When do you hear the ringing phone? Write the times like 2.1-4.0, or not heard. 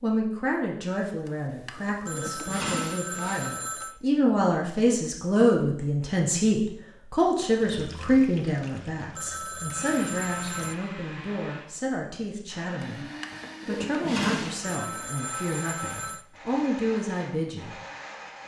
2.0-4.0, 9.2-10.8, 14.6-16.2.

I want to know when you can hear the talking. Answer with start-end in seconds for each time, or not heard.
0.0-13.1, 13.7-17.8.